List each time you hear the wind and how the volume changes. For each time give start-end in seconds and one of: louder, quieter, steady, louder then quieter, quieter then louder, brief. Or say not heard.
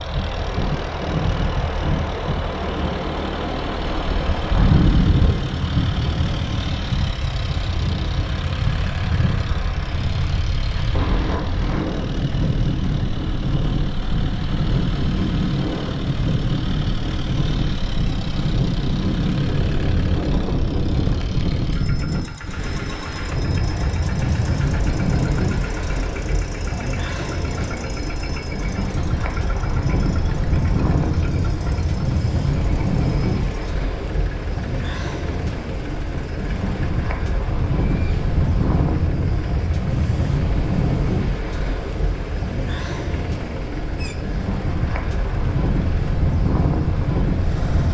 0.0-47.8 steady.